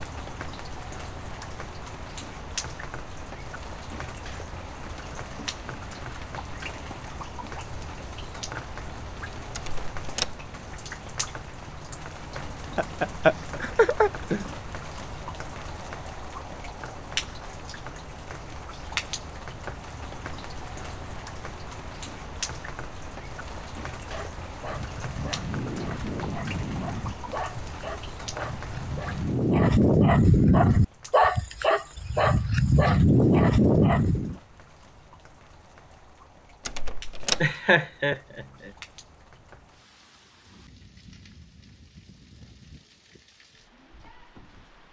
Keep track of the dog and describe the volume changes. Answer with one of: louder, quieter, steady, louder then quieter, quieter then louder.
louder.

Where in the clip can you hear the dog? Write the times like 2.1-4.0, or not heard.
23.9-34.4.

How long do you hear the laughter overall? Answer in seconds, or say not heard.
3 s.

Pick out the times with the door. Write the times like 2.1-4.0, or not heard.
9.5-10.4, 36.6-37.5.